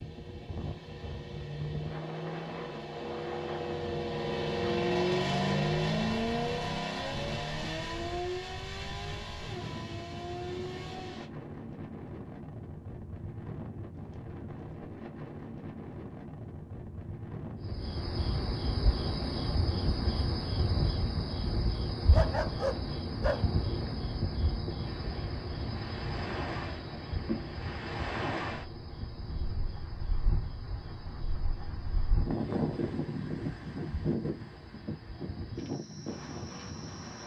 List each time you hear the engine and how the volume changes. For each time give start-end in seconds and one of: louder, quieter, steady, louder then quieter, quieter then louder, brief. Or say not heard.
0.0-11.3 louder then quieter.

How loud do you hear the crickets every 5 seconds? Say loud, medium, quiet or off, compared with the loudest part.
off, off, off, loud, loud, medium, quiet, quiet.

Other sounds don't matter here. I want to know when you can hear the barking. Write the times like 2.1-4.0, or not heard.
21.9-23.4.